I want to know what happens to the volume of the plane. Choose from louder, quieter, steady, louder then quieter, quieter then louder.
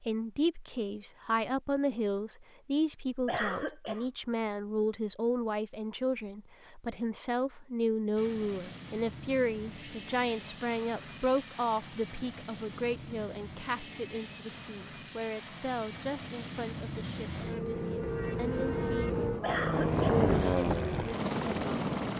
louder.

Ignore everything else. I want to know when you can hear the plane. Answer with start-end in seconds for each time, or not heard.
8.2-22.1.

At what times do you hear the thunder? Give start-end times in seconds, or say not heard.
not heard.